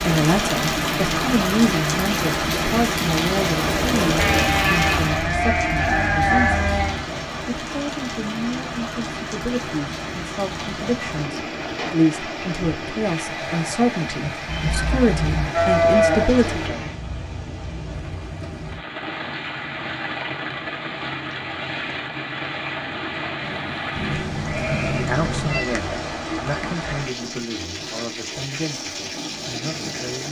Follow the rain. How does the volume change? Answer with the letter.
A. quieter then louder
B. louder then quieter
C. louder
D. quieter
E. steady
D.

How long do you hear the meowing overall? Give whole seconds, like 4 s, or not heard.
4 s.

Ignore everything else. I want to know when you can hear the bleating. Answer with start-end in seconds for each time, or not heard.
4.2-7.0, 15.5-16.8, 23.4-25.1.